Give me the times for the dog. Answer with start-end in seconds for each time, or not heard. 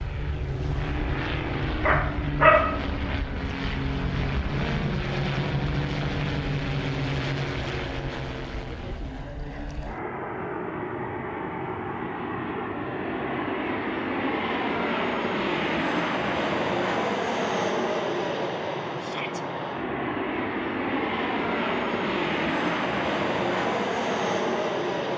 1.8-2.6.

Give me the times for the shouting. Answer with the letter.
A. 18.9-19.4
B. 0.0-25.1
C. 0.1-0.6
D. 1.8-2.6
A.